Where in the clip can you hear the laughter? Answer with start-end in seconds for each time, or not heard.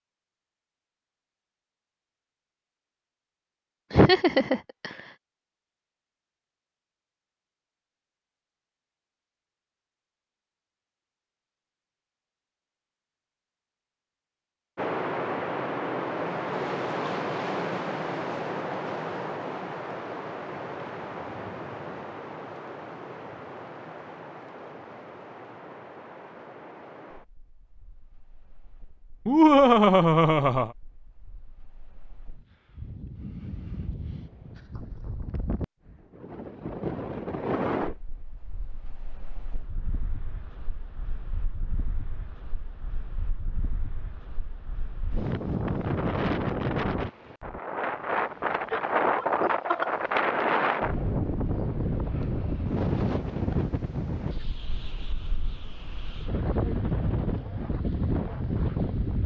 3.9-5.0, 29.2-30.7, 48.7-49.9.